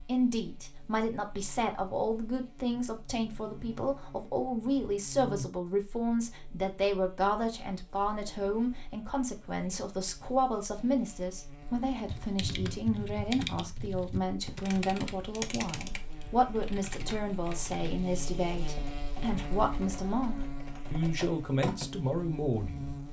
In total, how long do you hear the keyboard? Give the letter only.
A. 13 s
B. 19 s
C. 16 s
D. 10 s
D.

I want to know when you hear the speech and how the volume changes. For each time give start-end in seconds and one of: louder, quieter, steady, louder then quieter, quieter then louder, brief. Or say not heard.
0.1-22.9 steady.